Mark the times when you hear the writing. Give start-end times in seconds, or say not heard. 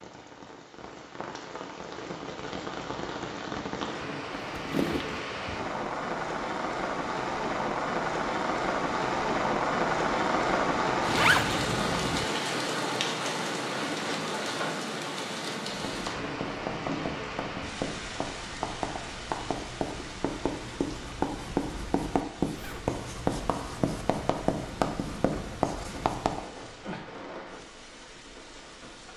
15.7-26.4.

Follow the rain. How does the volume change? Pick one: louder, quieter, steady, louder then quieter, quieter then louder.
louder then quieter.